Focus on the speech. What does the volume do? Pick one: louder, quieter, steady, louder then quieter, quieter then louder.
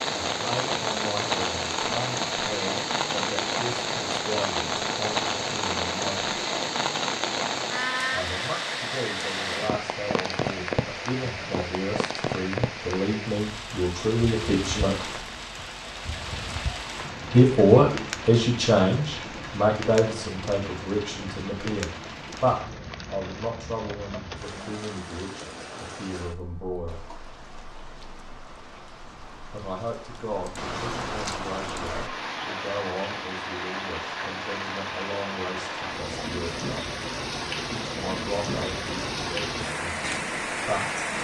louder then quieter.